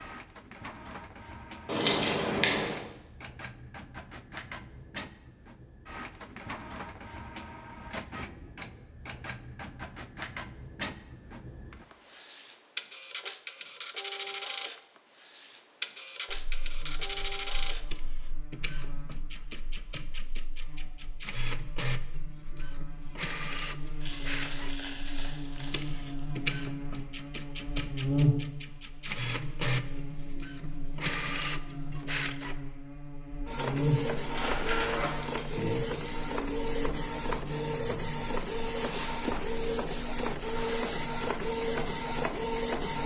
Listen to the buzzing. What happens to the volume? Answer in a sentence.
The loudness of the buzzing goes up, then down.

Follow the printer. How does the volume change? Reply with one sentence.
The loudness of the printer goes up.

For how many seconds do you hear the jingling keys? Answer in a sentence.
The jingling keys can be heard for 5 seconds in total.